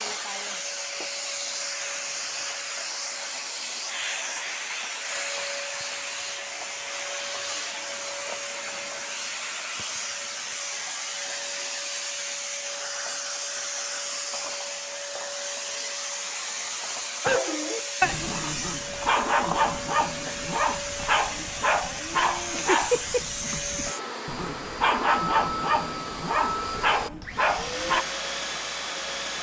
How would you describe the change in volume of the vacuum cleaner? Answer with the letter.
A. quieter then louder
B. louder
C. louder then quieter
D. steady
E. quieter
D.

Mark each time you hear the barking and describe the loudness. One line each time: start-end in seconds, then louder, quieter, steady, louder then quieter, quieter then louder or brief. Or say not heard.
17.2-28.1 steady.